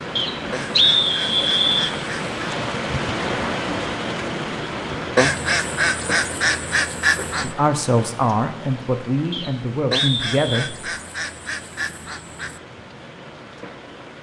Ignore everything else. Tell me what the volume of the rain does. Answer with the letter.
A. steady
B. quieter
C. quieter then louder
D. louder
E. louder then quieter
B.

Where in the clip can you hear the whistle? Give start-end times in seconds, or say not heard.
0.1-1.9, 9.3-10.8.